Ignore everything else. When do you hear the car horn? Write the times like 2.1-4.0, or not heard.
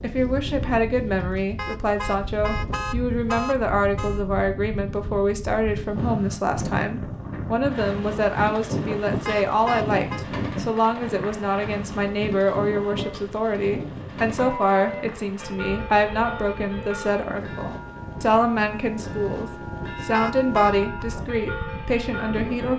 1.6-4.2, 9.2-10.2, 20.1-20.8.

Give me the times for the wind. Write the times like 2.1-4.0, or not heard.
0.0-22.7.